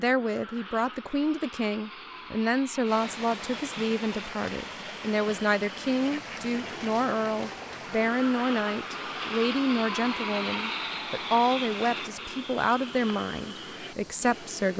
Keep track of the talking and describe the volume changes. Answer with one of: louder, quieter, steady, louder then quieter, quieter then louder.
steady.